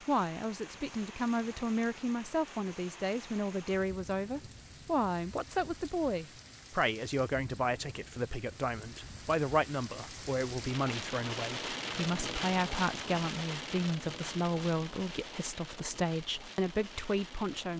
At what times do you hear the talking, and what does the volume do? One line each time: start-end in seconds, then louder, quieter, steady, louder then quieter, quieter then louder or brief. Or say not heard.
0.1-17.7 steady.